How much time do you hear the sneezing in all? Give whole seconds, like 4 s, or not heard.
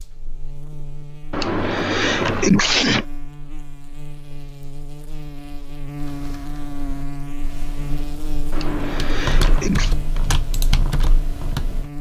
3 s.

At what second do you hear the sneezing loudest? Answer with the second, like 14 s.
3 s.